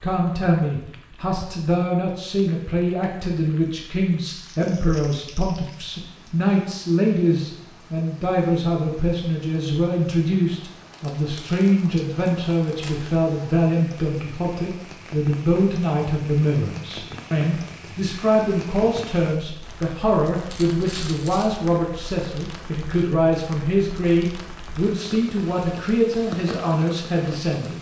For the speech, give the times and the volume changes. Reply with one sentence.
You can hear the speech from 0.0 to 27.7 s, at a steady volume.